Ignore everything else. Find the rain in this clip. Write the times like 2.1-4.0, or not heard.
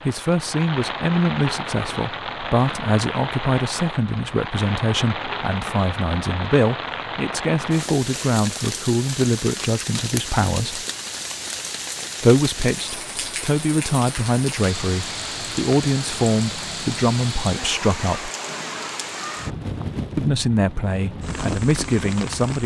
0.0-22.6.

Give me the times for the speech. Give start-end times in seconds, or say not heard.
0.1-10.8, 12.2-18.3, 20.1-22.6.